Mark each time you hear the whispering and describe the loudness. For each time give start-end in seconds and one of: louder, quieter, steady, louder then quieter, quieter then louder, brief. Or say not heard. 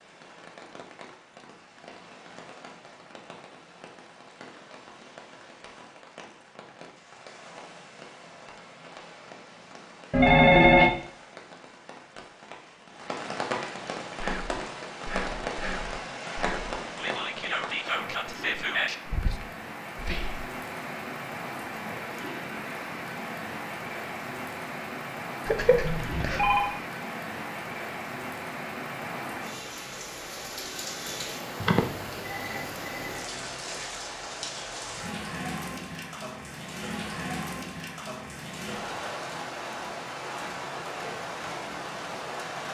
14.2-20.5 louder then quieter.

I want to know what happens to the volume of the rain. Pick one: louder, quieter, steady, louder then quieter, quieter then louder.
louder.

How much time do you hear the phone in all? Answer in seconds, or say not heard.
4 s.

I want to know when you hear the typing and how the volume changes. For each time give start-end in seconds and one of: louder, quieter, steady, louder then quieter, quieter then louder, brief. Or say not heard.
not heard.